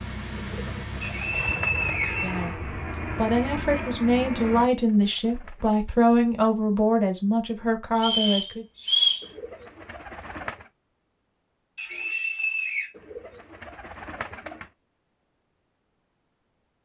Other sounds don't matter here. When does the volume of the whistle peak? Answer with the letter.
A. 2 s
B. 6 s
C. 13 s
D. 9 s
D.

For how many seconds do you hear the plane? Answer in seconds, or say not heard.
5 s.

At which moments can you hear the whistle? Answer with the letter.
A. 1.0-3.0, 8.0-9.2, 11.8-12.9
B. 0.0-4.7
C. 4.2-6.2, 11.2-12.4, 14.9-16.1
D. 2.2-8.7
A.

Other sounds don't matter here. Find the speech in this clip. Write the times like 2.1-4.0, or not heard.
2.2-8.7.